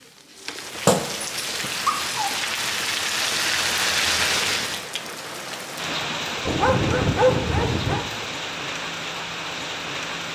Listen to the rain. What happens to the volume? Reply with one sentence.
The loudness of the rain goes up, then down.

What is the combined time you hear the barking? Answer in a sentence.
The barking can be heard for 3 seconds in total.